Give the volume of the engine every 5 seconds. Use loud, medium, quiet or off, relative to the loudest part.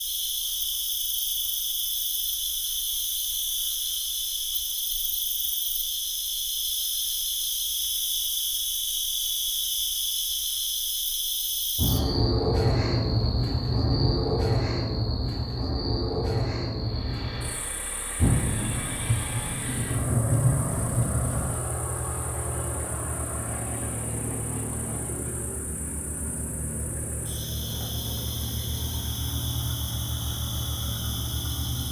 off, off, off, medium, loud, loud, loud.